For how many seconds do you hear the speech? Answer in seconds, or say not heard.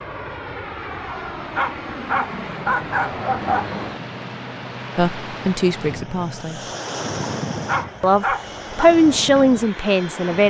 4 s.